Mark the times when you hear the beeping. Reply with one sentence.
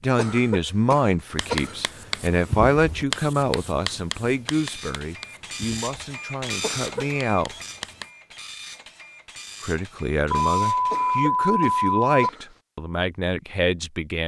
You can hear the beeping from 10.3 to 12.3 s.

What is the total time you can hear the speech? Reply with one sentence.
You can hear the speech for 12 seconds altogether.